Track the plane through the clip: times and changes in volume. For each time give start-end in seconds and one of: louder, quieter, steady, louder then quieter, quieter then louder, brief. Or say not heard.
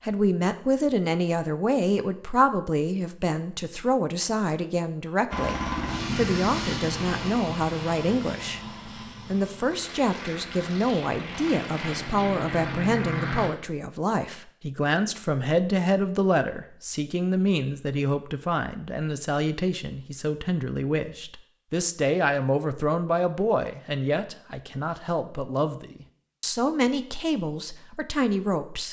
5.3-13.5 quieter then louder.